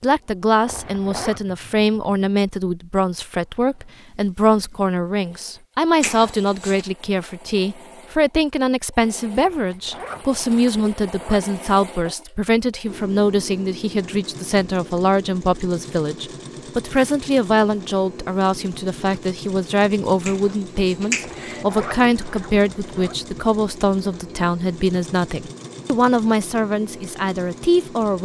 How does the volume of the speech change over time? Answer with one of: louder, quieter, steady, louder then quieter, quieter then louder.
steady.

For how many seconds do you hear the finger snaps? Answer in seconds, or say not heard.
2 s.